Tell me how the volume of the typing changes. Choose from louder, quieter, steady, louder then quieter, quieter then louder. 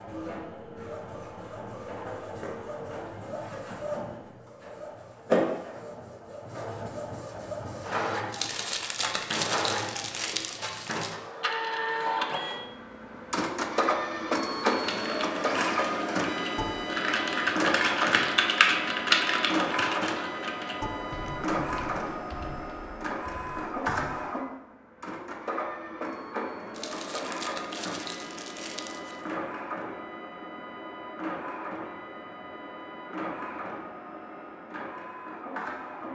louder then quieter.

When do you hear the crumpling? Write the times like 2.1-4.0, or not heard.
8.3-11.1, 26.7-29.3.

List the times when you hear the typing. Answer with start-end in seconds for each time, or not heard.
14.7-24.3.